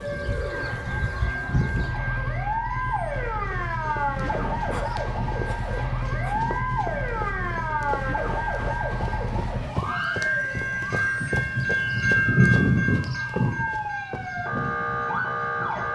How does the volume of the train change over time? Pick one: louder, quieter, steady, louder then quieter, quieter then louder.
louder.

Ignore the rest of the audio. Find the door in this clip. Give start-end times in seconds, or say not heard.
not heard.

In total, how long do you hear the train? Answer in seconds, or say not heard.
16 s.